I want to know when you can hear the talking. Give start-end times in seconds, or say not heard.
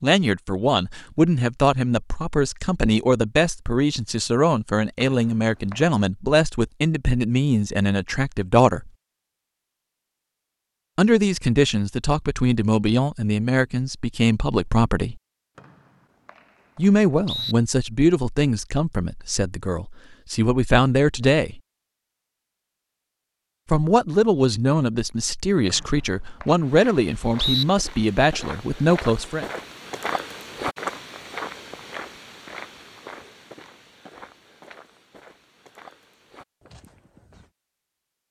0.0-8.9, 10.9-15.2, 16.8-21.6, 23.7-29.4.